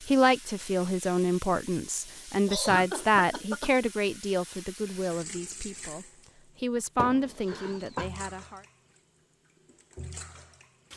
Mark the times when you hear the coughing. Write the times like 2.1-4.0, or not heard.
2.5-3.7, 7.5-8.1.